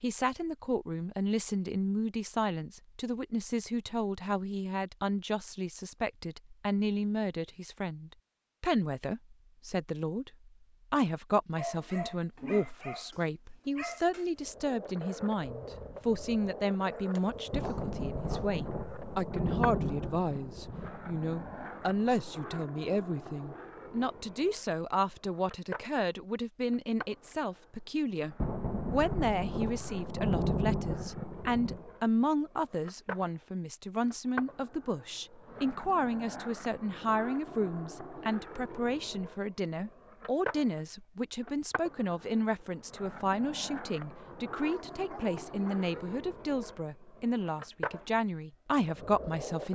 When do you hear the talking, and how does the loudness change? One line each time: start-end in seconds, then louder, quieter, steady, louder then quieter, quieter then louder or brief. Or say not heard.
0.0-49.6 steady.